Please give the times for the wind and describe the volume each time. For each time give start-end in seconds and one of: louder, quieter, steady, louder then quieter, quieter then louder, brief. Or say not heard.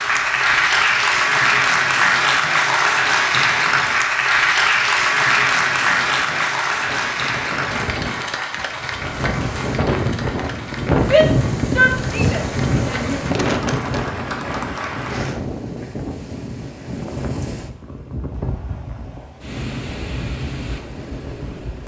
0.0-21.8 louder then quieter.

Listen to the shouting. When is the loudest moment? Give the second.
11 s.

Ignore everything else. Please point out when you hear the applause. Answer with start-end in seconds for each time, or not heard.
0.0-15.4.